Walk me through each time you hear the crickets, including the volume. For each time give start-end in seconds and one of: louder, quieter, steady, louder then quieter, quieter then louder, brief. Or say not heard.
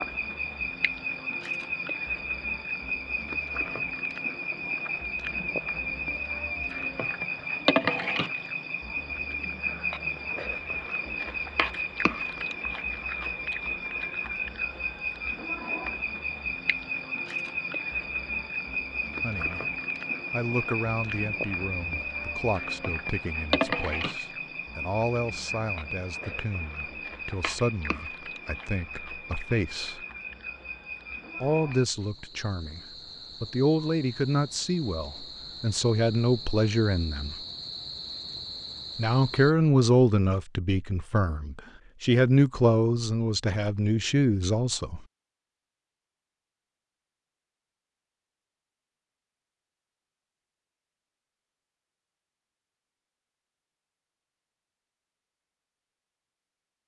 0.0-39.5 quieter.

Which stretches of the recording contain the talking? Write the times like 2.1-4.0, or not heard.
19.2-19.6, 20.3-30.1, 31.4-32.8, 33.4-37.4, 39.0-45.0.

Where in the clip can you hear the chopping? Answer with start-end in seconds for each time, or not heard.
not heard.